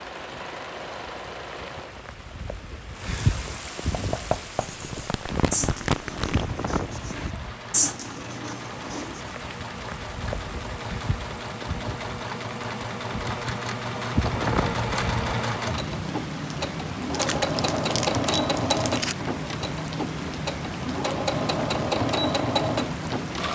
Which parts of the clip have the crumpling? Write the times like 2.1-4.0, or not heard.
4.7-6.6, 17.1-19.1.